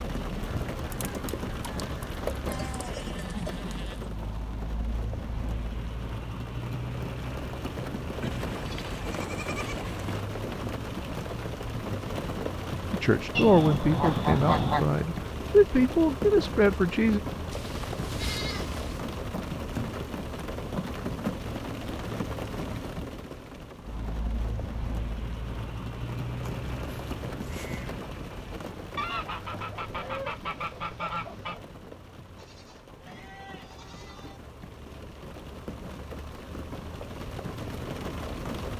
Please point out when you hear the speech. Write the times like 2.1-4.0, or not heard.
12.9-17.2.